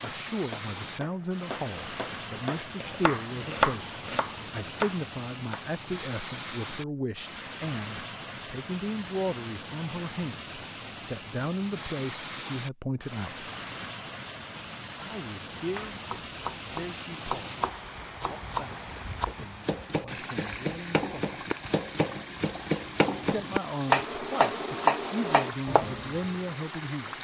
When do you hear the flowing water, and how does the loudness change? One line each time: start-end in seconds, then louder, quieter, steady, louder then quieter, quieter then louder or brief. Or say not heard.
0.0-27.1 steady.